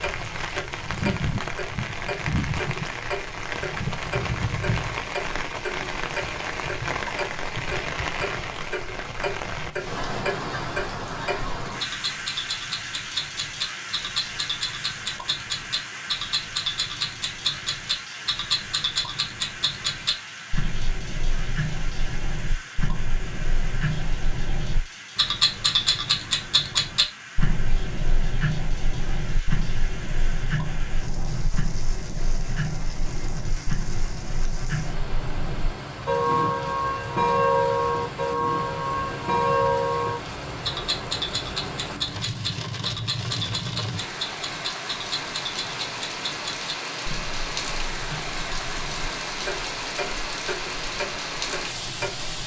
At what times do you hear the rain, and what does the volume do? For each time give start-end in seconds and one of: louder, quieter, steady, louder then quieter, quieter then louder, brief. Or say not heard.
0.0-52.4 quieter then louder.